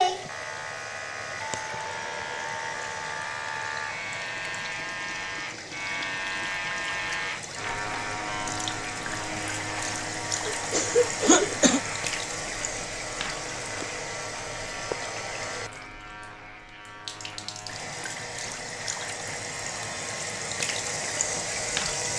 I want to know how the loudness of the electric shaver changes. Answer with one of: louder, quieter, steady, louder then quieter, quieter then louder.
quieter.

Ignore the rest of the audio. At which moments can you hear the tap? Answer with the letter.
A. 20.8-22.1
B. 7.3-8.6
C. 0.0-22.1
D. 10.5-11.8
C.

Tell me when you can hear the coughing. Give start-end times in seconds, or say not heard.
10.5-11.8.